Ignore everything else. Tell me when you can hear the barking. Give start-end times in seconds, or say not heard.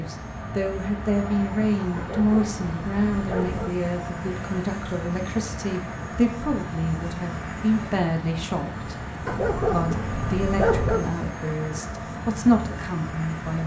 1.9-3.8, 9.2-11.1.